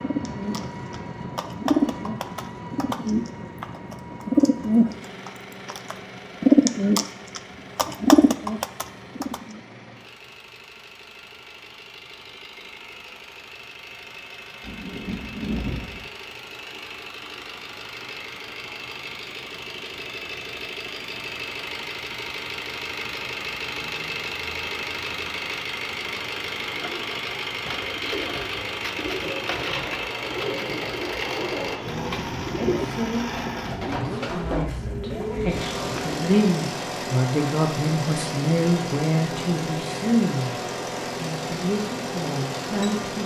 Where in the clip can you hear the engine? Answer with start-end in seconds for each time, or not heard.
0.0-43.2.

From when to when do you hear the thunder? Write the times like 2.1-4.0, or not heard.
14.6-16.1.